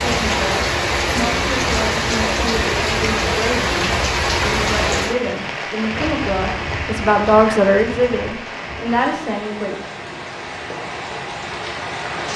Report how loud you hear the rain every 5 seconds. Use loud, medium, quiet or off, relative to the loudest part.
loud, medium, medium.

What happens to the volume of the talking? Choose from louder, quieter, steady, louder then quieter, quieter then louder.
louder.